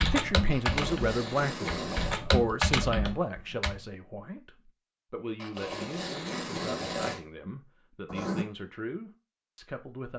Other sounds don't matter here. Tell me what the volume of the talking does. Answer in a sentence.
The volume of the talking goes down.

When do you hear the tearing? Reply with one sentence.
You can hear the tearing from 0.5 to 2.2 s and from 5.3 to 7.2 s.